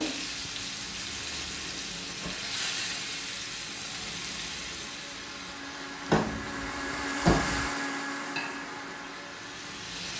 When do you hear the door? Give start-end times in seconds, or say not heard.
1.4-2.4, 6.0-7.7.